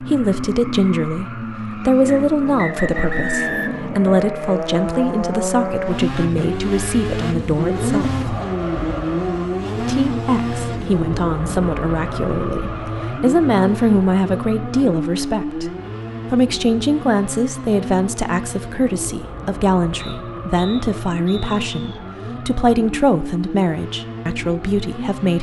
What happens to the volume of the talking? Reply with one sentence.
The volume of the talking stays about the same.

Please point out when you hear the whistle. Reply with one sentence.
The whistle can be heard from 2.0 to 3.9 s and from 19.9 to 22.0 s.